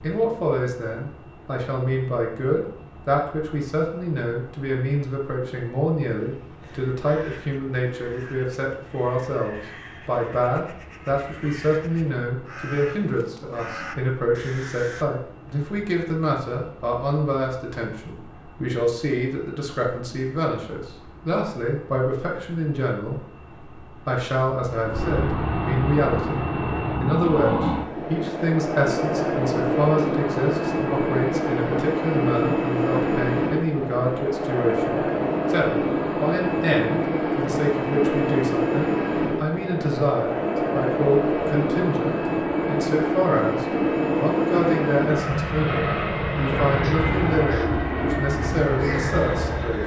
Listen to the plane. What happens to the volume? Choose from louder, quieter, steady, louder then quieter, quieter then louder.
louder.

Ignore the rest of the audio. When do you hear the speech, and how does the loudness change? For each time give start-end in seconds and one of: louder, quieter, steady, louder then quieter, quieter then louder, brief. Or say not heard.
0.0-23.2 steady
24.1-26.4 brief
27.0-49.8 steady.